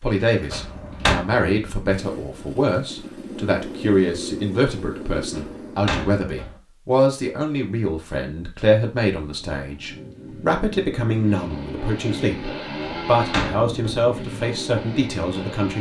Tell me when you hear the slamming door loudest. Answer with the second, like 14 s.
1 s.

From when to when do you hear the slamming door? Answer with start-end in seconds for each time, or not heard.
0.5-1.2, 5.3-6.6, 12.8-14.1.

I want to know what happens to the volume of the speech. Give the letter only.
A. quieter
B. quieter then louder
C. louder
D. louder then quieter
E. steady
E.